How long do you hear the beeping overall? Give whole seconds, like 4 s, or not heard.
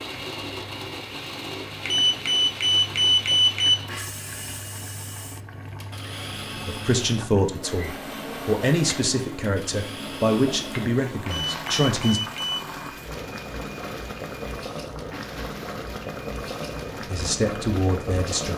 3 s.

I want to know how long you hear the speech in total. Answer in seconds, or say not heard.
7 s.